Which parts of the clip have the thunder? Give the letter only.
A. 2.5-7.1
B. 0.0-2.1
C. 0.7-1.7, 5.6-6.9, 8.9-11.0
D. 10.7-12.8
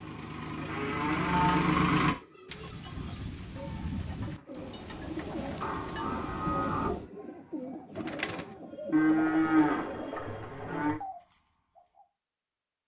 A.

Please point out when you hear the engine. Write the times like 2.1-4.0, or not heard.
0.0-2.1.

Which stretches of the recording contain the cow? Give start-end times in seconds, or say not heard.
0.7-1.7, 5.6-6.9, 8.9-11.0.